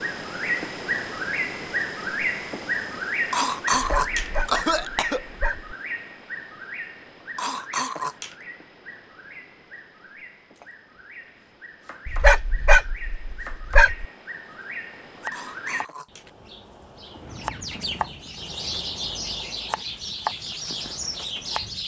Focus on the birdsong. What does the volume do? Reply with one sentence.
The loudness of the birdsong goes down, then up.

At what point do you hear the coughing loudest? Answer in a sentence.
The volume of the coughing peaks at 4 seconds.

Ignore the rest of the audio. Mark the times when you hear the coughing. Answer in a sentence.
You can hear the coughing from 3.3 to 5.2 s, from 7.3 to 8.3 s and from 15.3 to 16.2 s.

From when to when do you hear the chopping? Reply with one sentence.
You can hear the chopping from 10.6 to 11.1 s, from 11.8 to 12.2 s and from 13.4 to 21.6 s.